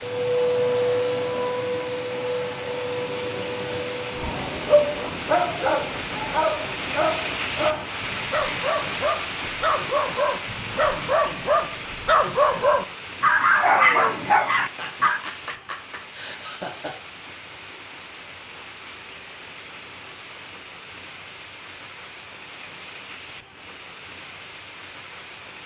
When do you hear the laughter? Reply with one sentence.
You can hear the laughter from 14.6 to 16.9 s.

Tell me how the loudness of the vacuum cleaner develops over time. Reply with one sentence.
The loudness of the vacuum cleaner goes down.